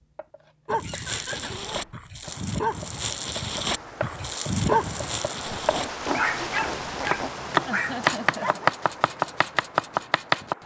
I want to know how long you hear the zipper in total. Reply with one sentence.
You can hear the zipper for 3 seconds altogether.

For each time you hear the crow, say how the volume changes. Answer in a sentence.
The crow can't be heard in this clip.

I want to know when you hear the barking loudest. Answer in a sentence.
The loudest moment of the barking is at 5 seconds.